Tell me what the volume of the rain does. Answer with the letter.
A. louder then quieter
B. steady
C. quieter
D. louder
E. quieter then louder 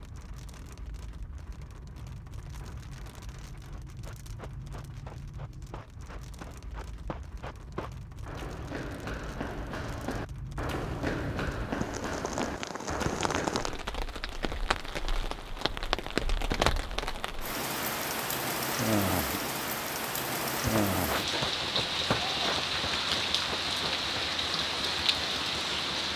D.